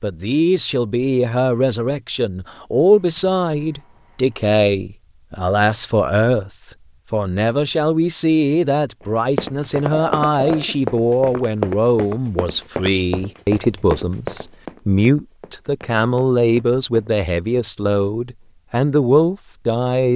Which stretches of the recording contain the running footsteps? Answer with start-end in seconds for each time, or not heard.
9.3-17.1.